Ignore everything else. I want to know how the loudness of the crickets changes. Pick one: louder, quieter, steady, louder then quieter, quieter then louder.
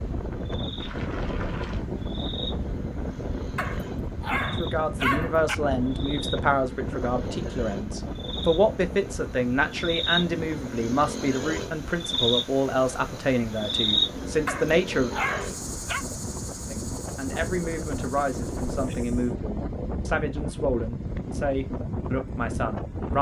louder then quieter.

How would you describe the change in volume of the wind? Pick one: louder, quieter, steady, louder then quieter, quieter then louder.
quieter then louder.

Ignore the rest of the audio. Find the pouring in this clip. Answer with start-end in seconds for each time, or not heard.
0.8-1.9.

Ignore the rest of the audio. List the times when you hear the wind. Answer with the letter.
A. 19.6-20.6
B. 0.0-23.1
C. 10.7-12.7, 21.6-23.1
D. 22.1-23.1
B.